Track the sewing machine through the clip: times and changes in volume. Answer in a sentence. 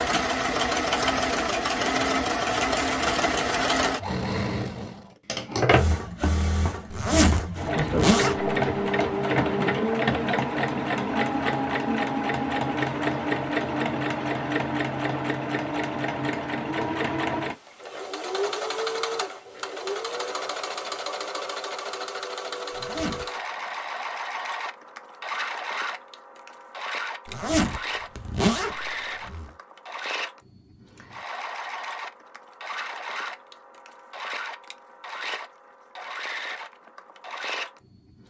The sewing machine can be heard from 0.0 to 38.2 s, getting quieter.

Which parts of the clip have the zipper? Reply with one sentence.
The zipper can be heard from 6.9 to 8.6 s, from 22.7 to 23.2 s and from 27.2 to 29.5 s.